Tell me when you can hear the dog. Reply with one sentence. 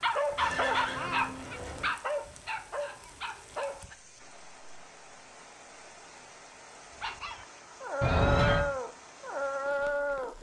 You can hear the dog from 0.0 to 4.0 s and from 7.0 to 10.3 s.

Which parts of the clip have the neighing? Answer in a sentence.
The neighing can be heard from 0.3 to 1.9 s and from 8.0 to 8.7 s.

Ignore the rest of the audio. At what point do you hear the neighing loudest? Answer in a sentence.
The volume of the neighing peaks at 8 seconds.